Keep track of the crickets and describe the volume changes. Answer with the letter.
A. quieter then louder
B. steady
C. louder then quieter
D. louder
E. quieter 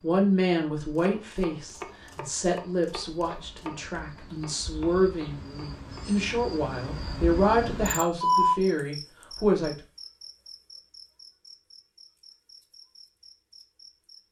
C.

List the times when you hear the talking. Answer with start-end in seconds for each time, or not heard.
0.0-9.8.